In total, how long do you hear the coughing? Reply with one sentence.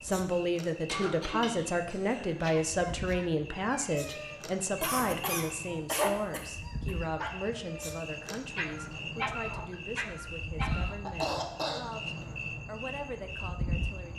You can hear the coughing for 5 seconds altogether.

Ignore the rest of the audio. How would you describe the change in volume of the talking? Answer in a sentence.
The volume of the talking goes down.